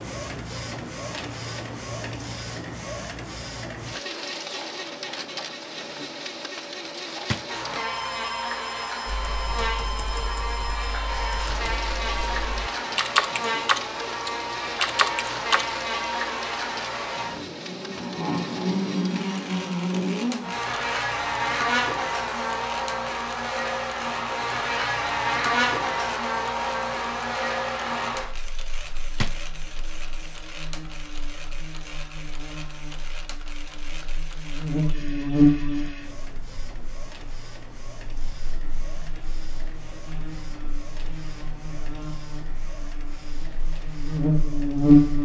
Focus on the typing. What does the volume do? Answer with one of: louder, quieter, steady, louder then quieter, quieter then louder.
louder.